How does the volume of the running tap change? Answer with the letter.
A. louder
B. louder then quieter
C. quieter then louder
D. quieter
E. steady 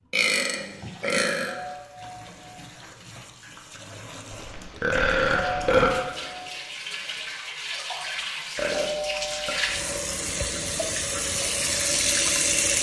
A.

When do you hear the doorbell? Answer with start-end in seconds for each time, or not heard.
1.4-2.6, 5.3-6.5, 8.7-9.6.